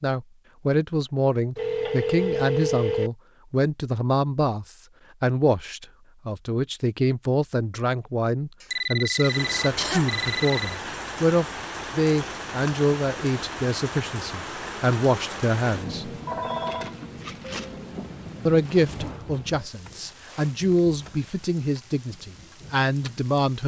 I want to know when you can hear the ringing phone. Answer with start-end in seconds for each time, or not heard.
1.6-3.1, 8.7-10.8, 16.2-16.9.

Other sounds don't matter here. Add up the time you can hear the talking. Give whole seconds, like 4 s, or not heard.
21 s.